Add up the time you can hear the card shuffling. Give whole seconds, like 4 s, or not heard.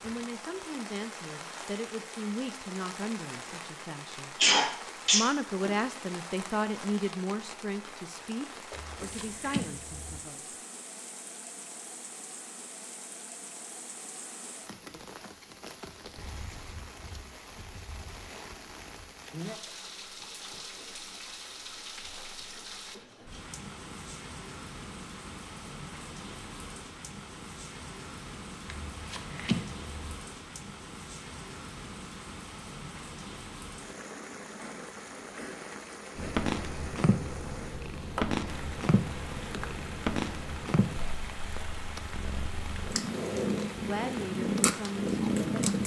3 s.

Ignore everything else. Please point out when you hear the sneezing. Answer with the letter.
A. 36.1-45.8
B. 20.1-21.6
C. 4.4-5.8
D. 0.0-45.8
C.